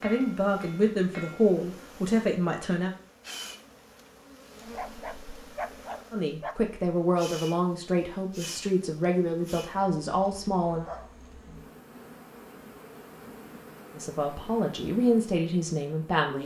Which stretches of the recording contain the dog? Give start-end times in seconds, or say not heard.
4.6-6.8.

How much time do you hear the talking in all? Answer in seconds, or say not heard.
10 s.